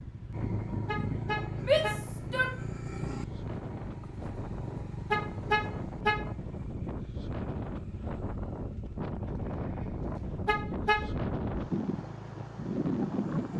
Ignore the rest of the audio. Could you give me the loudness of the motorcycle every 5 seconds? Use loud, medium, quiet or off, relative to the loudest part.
loud, medium, medium.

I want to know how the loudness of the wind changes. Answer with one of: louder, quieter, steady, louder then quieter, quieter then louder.
louder.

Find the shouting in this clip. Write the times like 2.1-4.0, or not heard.
1.6-2.5.